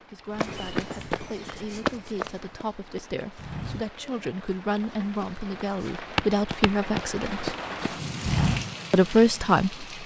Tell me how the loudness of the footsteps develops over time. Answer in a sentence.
The volume of the footsteps goes down, then up.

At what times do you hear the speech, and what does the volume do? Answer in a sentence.
You can hear the speech from 0.1 to 7.5 s, getting louder; and briefly from 8.9 to 9.8 s.